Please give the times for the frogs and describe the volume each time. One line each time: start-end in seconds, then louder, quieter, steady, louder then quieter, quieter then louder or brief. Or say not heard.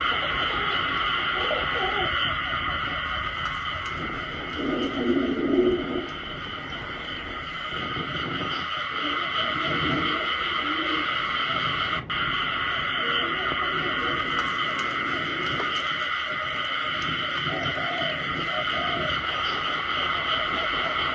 0.0-21.1 quieter then louder.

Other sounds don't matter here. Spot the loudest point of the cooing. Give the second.
6 s.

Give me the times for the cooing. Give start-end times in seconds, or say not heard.
0.1-2.1, 4.5-6.1, 8.9-11.1, 12.9-14.5, 17.4-19.1.